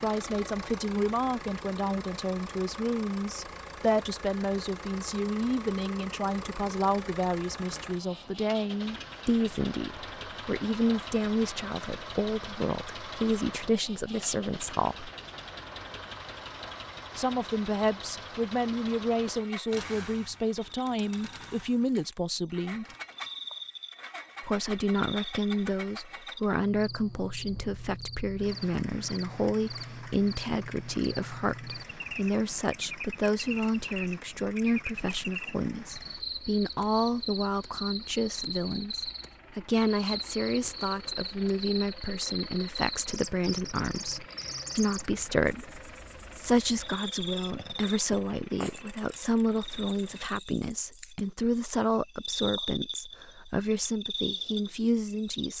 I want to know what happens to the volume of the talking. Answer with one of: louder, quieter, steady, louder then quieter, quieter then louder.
steady.